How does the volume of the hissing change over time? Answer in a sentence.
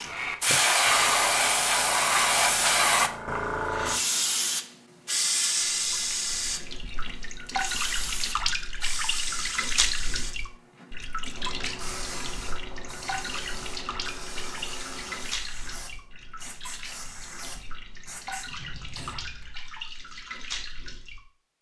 The loudness of the hissing goes down.